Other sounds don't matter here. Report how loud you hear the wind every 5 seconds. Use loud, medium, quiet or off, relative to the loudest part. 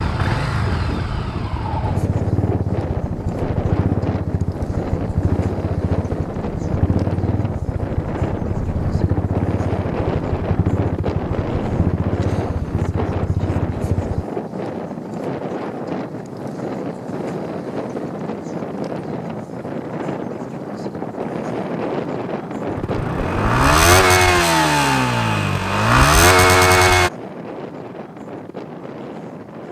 loud, loud, loud, loud, loud, medium.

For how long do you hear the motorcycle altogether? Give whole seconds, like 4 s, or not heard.
19 s.